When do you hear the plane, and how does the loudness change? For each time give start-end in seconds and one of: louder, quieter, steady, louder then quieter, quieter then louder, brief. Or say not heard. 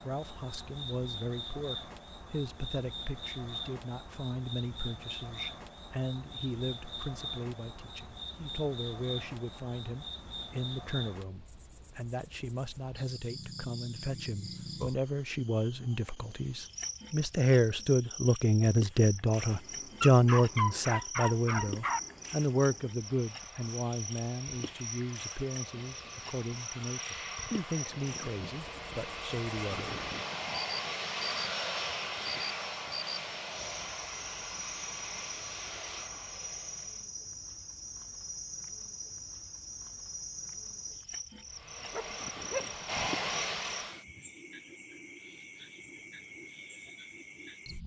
19.4-37.1 louder then quieter
41.5-44.0 brief.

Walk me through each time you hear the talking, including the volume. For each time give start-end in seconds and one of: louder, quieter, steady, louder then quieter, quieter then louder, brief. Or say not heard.
0.0-30.0 louder then quieter.